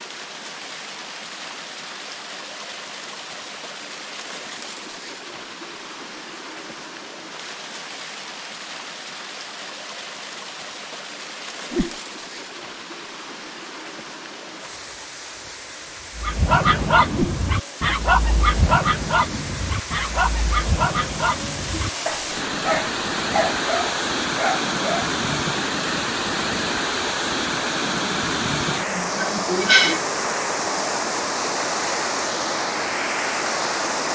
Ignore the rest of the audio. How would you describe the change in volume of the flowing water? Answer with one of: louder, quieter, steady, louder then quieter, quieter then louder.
louder.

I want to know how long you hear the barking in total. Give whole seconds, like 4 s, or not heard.
9 s.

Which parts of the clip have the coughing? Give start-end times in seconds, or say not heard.
28.9-30.0.